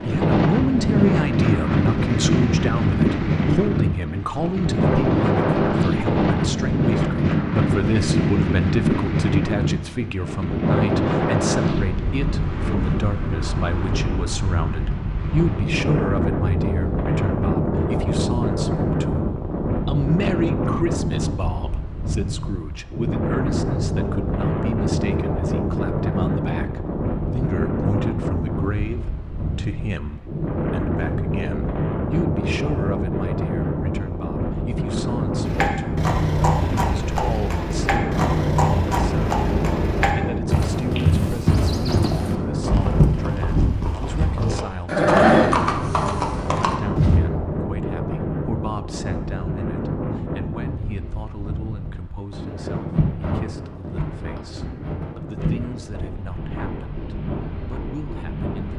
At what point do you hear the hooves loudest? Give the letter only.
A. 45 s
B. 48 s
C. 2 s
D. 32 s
A.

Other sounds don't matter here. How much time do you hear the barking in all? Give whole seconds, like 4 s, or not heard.
not heard.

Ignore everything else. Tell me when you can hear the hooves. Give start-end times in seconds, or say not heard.
35.4-47.2.